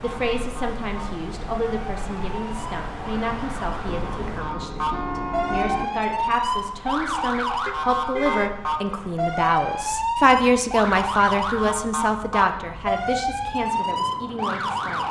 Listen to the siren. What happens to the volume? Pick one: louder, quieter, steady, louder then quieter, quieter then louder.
louder.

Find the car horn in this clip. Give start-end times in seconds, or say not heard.
3.9-5.8, 7.7-8.8.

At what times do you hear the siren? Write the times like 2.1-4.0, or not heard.
0.0-15.0.